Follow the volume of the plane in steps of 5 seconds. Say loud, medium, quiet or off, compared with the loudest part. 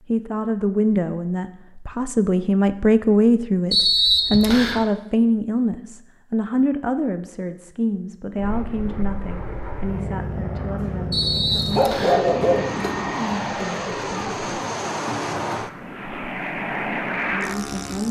off, medium, loud, loud.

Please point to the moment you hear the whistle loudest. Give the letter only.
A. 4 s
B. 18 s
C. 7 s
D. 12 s
A.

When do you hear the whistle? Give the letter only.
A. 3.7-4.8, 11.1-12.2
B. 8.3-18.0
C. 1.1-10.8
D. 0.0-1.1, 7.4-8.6
A.